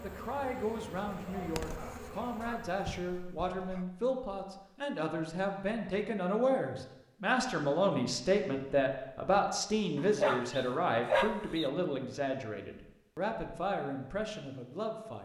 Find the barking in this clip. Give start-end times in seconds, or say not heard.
0.9-3.9, 9.9-11.7.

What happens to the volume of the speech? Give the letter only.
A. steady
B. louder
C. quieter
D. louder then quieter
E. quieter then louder
D.